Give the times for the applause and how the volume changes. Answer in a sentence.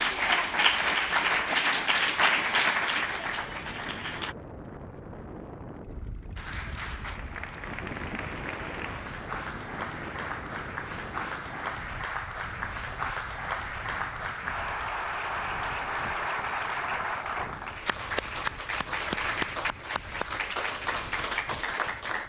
You can hear the applause from 0.0 to 4.3 s, getting quieter; and from 6.3 to 22.2 s, getting louder.